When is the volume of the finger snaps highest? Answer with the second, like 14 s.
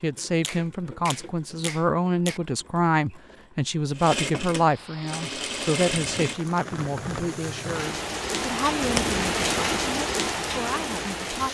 9 s.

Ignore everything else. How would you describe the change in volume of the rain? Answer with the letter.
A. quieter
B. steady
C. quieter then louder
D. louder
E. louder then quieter
D.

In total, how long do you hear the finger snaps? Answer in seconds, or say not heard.
3 s.